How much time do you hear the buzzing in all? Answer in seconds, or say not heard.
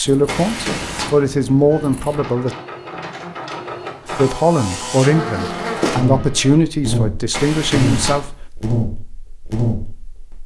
6 s.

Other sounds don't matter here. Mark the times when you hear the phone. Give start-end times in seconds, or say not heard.
0.2-1.2, 7.3-8.3.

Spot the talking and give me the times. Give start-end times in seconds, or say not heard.
0.0-2.5, 4.1-8.3.